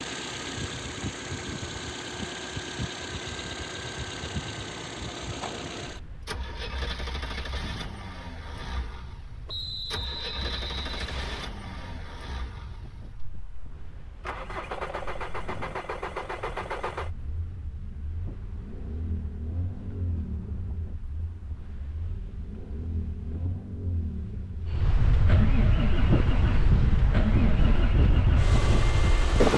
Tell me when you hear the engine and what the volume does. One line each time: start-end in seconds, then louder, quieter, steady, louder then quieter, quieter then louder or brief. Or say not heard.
0.0-29.5 quieter then louder.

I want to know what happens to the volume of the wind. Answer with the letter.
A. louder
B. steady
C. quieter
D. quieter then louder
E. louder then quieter
D.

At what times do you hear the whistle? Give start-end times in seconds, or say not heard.
9.4-11.4.